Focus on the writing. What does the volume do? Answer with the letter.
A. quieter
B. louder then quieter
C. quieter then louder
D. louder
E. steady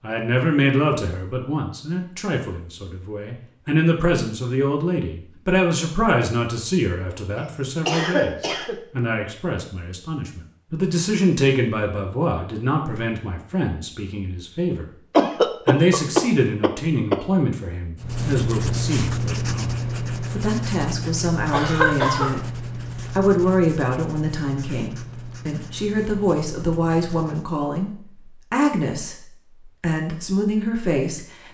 A.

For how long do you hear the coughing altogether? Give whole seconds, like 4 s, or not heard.
4 s.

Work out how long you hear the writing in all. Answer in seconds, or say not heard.
10 s.